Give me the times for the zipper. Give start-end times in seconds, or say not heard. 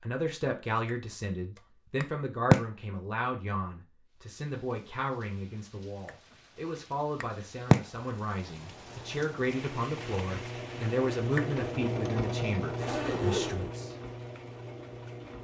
12.8-13.7.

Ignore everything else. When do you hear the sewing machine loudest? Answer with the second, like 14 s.
12 s.